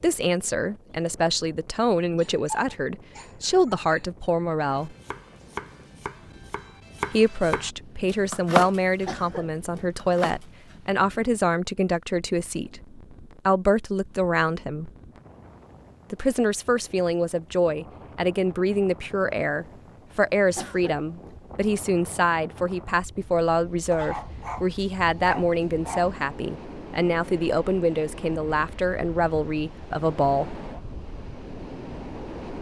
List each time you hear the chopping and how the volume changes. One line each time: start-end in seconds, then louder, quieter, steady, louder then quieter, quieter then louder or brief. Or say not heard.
4.6-9.2 quieter then louder
9.8-10.8 brief.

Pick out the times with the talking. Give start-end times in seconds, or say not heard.
0.0-4.9, 7.1-14.9, 16.1-30.6.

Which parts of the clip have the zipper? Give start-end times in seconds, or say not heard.
not heard.